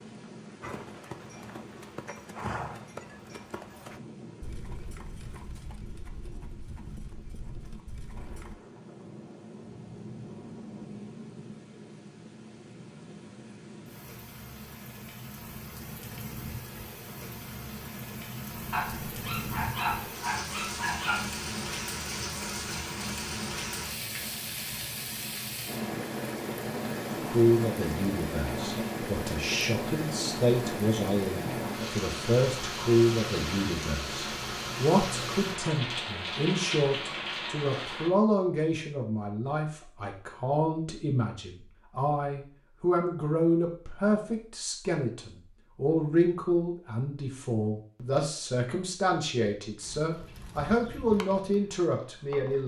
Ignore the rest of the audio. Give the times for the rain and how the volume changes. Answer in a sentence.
The rain can be heard from 0.0 to 38.1 s, getting louder.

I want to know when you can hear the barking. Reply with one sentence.
You can hear the barking from 18.7 to 21.4 s.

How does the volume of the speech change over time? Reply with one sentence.
The loudness of the speech stays about the same.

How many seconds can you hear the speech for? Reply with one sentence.
The speech can be heard for 25 seconds in total.